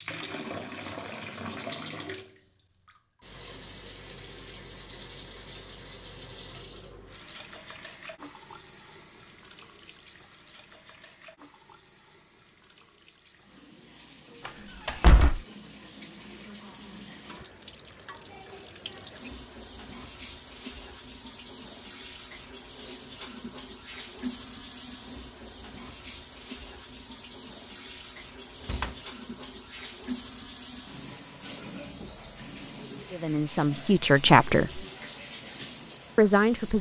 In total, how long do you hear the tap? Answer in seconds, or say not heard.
37 s.